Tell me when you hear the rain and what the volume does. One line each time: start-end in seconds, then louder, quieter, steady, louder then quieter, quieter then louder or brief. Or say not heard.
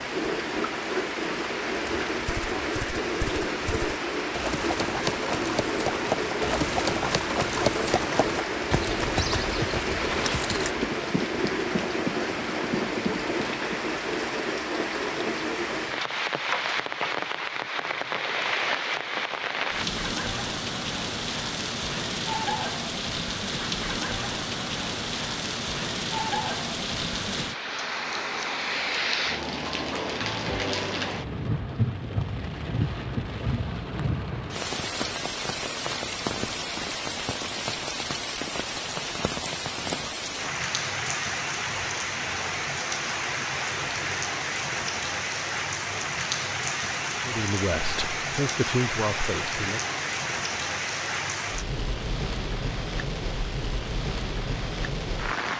0.0-55.5 steady.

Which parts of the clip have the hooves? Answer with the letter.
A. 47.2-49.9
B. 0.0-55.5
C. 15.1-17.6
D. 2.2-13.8
D.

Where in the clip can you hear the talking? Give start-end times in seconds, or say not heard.
47.2-49.9.